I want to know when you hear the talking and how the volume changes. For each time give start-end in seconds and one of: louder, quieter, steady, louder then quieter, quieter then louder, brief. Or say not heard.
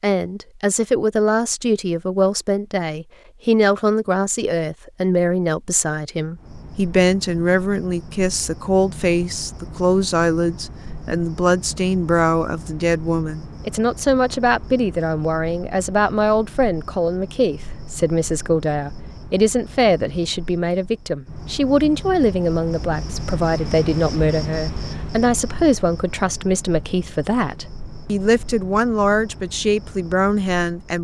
0.0-30.9 steady.